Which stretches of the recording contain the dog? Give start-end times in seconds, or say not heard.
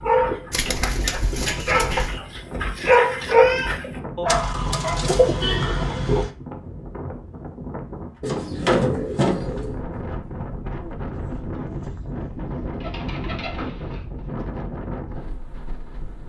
0.0-5.0.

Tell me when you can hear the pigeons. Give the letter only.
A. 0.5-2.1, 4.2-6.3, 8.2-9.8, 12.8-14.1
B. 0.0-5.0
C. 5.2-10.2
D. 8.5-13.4
A.